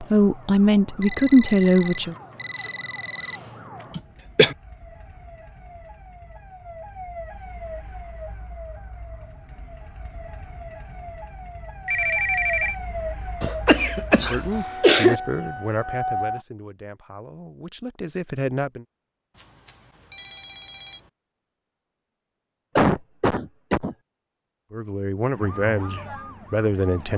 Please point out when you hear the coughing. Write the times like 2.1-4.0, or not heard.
3.9-4.5, 13.4-15.2, 22.8-23.9.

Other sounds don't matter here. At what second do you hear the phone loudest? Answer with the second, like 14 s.
12 s.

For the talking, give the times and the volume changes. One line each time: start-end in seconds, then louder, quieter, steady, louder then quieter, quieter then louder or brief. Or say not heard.
0.0-2.1 brief
14.2-18.9 quieter then louder
24.7-27.1 brief.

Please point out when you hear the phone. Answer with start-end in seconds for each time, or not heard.
1.0-3.4, 11.8-12.8, 19.4-21.1.